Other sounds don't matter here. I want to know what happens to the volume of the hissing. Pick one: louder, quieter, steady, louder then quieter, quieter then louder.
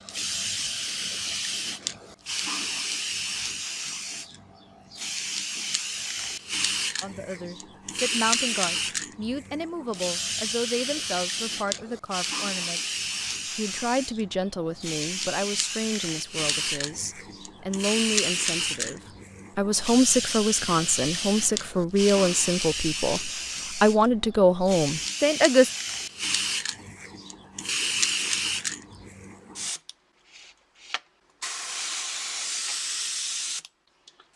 steady.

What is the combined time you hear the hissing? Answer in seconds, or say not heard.
34 s.